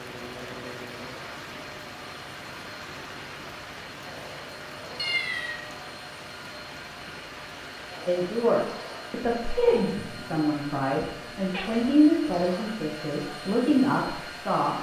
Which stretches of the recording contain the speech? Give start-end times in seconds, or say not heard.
8.1-14.7.